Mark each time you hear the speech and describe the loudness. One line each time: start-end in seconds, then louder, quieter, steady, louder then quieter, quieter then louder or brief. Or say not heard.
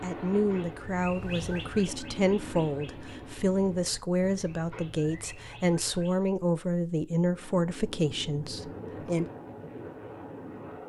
0.0-9.2 steady.